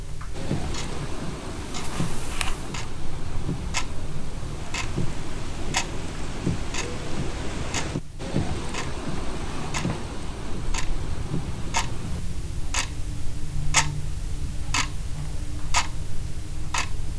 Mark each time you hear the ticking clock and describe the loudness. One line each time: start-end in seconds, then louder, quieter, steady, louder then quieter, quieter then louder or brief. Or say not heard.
0.0-17.1 louder.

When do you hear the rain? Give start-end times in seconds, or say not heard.
0.0-12.2.